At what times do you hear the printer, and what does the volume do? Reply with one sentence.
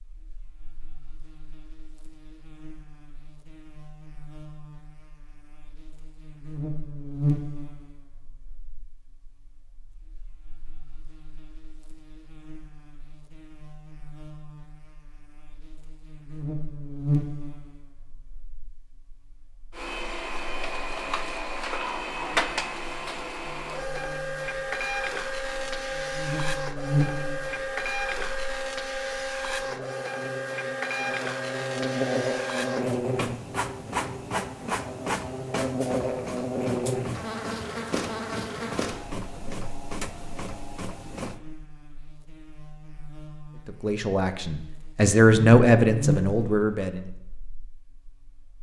The printer can be heard from 19.7 to 41.4 s, getting quieter.